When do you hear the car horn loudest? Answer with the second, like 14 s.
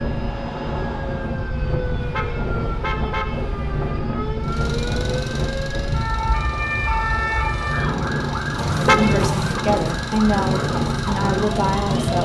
9 s.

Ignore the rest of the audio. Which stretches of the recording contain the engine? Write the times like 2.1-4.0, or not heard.
4.4-12.2.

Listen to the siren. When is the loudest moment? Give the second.
7 s.